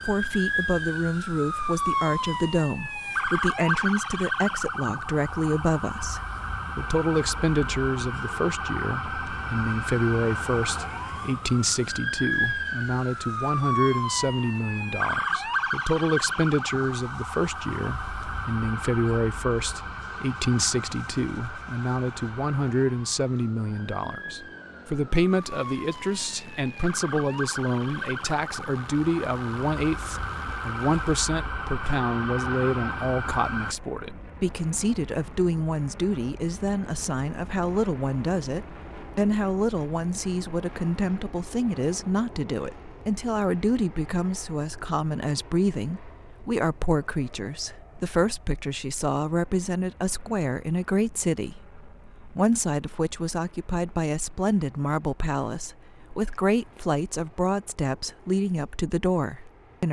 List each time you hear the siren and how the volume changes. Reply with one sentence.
The siren can be heard from 0.0 to 33.8 s, getting quieter then louder.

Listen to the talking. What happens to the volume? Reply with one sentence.
The loudness of the talking stays about the same.